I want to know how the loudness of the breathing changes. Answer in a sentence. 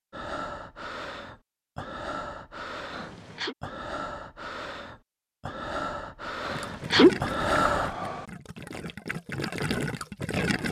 The loudness of the breathing goes up.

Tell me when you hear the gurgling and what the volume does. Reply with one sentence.
The gurgling can be heard from 6.5 to 10.6 s, getting quieter then louder.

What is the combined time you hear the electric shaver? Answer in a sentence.
The electric shaver can't be heard in this clip.